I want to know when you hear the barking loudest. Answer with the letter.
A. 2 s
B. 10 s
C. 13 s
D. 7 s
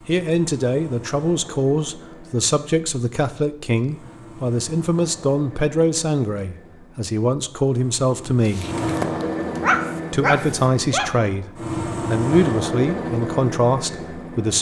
B.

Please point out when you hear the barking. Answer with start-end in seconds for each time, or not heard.
8.4-11.1.